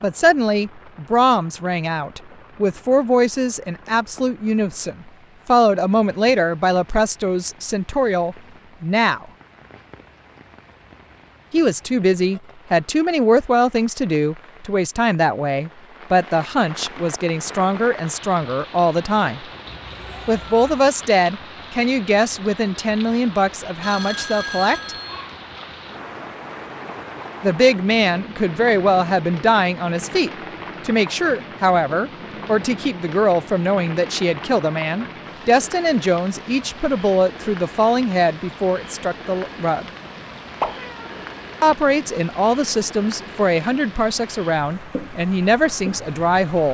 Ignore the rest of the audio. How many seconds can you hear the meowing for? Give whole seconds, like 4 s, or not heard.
2 s.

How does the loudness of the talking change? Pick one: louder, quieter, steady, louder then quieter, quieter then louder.
steady.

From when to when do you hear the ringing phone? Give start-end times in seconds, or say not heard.
23.8-25.2.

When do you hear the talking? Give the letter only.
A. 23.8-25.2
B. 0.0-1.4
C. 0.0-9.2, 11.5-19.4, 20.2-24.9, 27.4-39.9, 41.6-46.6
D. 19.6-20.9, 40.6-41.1
C.